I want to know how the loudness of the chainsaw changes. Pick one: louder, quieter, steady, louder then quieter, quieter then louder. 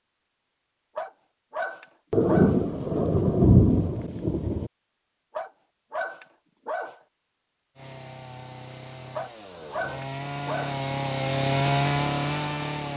louder.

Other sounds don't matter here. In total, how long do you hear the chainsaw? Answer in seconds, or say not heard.
5 s.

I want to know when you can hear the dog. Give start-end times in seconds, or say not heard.
0.9-2.6, 5.3-7.0, 9.2-10.8.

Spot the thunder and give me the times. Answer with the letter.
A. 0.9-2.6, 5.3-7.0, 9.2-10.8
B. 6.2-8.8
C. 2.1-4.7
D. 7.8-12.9
C.